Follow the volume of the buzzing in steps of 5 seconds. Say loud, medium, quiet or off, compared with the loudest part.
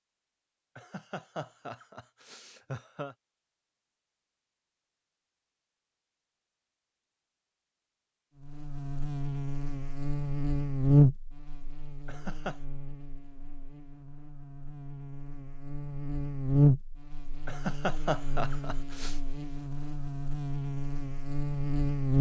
off, medium, loud, loud, loud.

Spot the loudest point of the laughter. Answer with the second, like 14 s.
18 s.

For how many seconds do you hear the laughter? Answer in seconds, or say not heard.
5 s.